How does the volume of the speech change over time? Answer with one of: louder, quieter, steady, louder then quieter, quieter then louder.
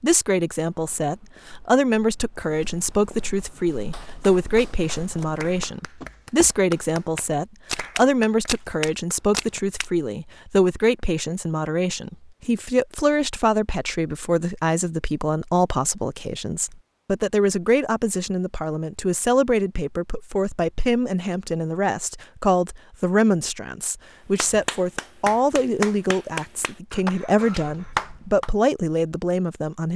steady.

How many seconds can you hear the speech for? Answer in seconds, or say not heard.
30 s.